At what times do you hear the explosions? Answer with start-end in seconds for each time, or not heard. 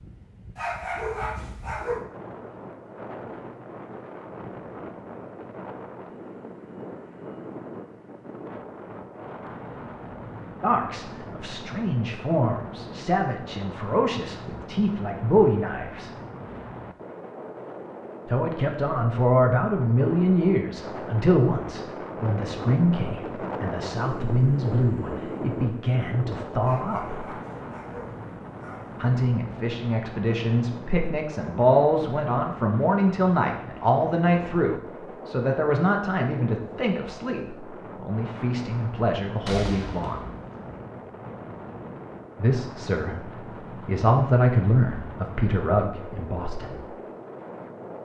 39.4-40.5.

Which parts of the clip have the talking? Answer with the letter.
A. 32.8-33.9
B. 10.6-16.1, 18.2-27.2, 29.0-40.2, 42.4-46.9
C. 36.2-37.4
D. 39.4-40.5
B.